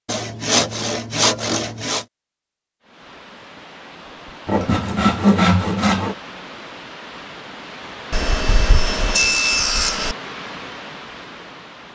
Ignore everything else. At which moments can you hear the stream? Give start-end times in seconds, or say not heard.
2.8-11.9.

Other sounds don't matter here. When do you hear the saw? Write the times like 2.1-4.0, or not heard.
0.1-2.0, 4.5-6.2, 8.1-10.2.